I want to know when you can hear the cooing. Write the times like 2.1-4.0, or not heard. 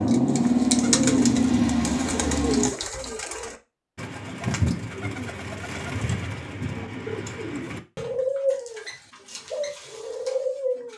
0.0-10.9.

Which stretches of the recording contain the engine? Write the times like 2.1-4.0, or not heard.
0.0-2.8.